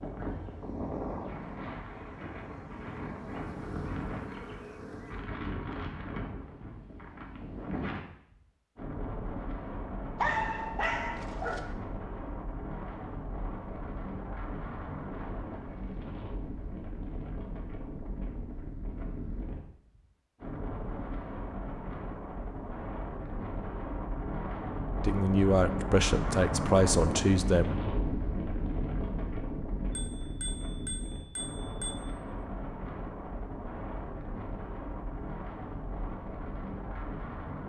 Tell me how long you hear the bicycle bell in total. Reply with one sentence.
The bicycle bell can be heard for 2 seconds in total.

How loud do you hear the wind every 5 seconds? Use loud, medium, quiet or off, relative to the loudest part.
medium, medium, medium, medium, medium, loud, medium, medium.